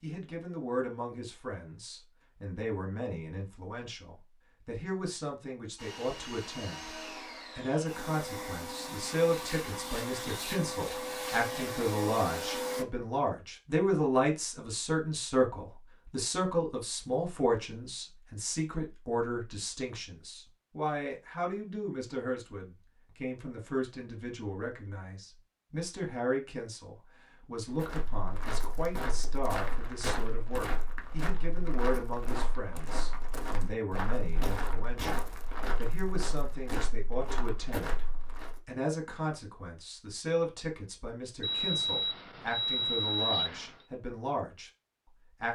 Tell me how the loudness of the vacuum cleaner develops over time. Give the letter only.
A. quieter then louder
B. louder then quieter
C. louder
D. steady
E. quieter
C.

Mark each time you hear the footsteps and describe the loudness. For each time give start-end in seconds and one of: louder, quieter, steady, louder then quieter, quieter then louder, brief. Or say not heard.
27.7-38.6 steady.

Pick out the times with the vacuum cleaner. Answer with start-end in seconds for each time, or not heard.
5.8-12.8.